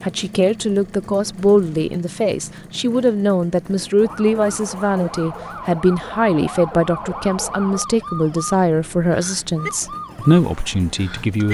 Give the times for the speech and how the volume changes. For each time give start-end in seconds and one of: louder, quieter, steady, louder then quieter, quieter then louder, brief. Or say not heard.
0.0-11.4 steady.